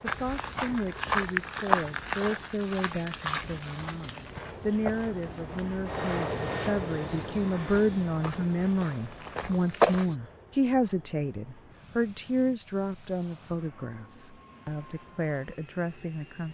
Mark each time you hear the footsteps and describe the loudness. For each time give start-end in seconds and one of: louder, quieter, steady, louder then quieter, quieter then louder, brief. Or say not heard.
0.1-10.2 quieter then louder.